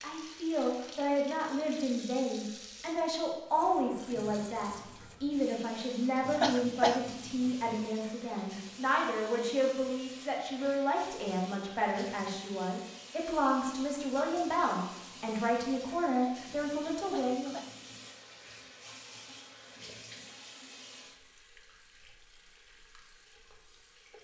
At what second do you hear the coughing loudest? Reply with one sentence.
The volume of the coughing peaks at 7 seconds.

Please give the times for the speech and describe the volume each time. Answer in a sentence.
You can hear the speech from 0.0 to 17.6 s, at a steady volume.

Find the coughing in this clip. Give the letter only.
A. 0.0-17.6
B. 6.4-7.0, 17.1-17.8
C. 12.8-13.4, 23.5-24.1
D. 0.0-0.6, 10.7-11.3
B.